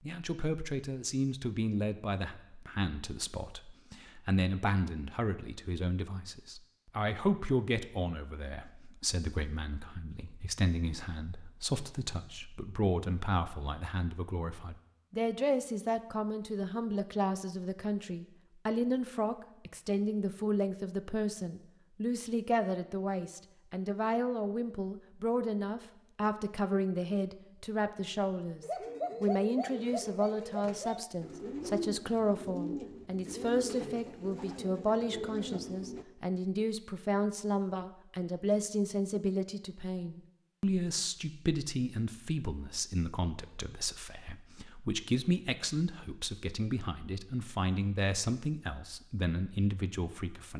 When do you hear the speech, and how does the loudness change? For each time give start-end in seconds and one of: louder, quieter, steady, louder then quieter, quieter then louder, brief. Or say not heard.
0.0-50.5 steady.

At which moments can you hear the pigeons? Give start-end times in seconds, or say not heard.
28.6-36.0.